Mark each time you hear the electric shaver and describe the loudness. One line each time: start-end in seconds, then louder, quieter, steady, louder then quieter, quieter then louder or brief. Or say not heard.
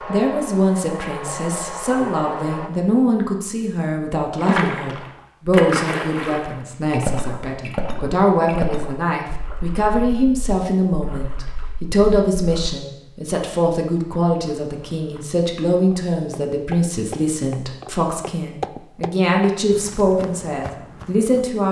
not heard.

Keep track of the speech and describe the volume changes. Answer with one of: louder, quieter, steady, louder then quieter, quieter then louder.
steady.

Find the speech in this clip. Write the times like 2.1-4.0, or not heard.
0.1-21.6.